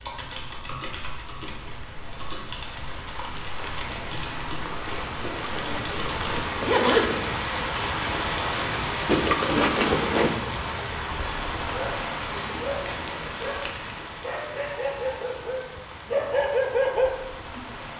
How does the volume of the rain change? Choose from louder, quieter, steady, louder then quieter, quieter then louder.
louder then quieter.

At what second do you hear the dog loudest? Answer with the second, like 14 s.
17 s.